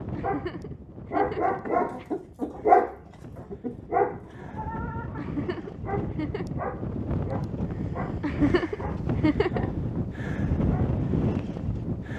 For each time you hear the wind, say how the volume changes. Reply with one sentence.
The wind can be heard from 0.0 to 12.1 s, getting louder.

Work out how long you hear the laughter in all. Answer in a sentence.
You can hear the laughter for 5 seconds altogether.